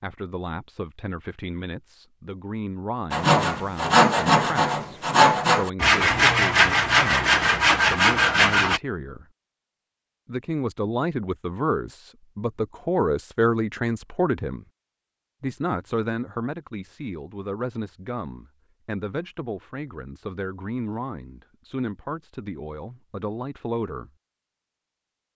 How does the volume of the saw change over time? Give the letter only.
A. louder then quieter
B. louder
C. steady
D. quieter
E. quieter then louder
C.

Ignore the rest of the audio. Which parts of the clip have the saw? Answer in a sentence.
You can hear the saw from 3.1 to 8.8 s.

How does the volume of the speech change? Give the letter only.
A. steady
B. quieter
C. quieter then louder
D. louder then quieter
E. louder
D.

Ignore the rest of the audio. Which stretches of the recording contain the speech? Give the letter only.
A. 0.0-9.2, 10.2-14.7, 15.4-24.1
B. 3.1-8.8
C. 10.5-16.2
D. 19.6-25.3
A.